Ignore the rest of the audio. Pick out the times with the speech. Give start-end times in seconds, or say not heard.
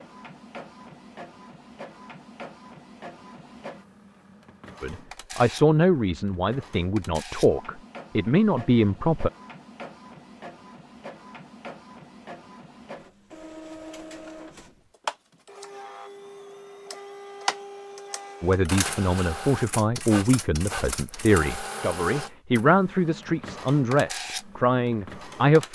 4.8-9.3, 18.4-25.6.